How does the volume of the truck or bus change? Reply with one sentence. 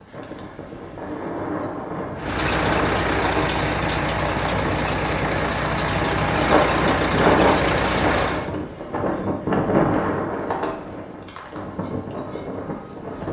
The loudness of the truck or bus stays about the same.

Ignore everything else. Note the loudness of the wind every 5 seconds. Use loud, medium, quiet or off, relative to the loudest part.
medium, loud, medium.